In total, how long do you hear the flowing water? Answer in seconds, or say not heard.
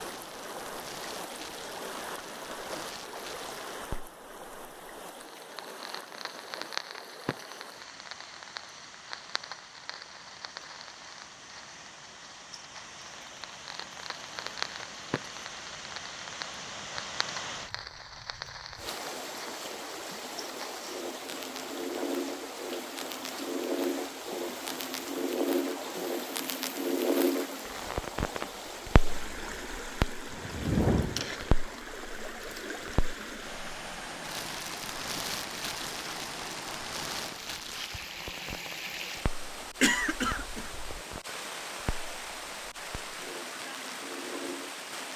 45 s.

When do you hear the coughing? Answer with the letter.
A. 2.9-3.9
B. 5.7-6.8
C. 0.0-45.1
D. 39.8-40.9
D.